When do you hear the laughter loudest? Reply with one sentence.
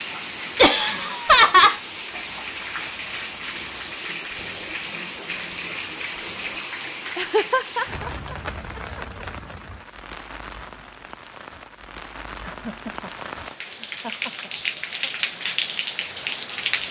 The volume of the laughter peaks at 1 second.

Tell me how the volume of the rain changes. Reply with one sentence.
The volume of the rain goes down, then up.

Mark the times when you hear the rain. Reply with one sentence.
You can hear the rain from 0.0 to 16.8 s.